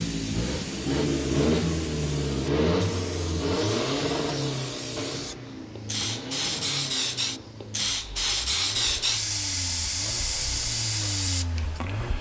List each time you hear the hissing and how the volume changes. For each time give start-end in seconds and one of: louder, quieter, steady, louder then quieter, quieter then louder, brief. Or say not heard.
0.0-12.1 louder.